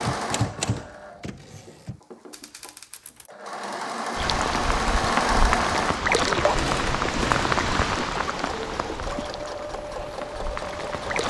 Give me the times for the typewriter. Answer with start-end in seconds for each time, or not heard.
0.0-3.3.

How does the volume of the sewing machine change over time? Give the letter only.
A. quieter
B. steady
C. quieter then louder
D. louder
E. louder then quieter
E.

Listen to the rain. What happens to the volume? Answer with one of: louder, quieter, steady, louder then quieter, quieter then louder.
quieter.